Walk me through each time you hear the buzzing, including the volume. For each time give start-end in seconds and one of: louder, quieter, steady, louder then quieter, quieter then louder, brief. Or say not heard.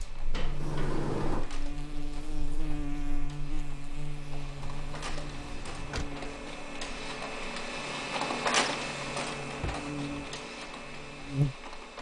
0.0-11.7 quieter then louder.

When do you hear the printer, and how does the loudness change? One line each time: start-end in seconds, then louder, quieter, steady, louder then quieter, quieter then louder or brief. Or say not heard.
0.0-11.9 louder then quieter.